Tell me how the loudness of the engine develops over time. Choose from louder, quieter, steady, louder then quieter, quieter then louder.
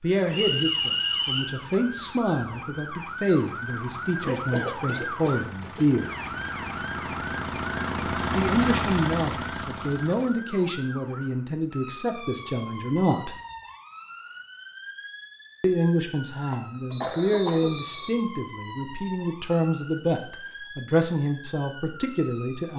louder.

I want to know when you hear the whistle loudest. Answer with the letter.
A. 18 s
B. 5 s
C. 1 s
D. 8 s
C.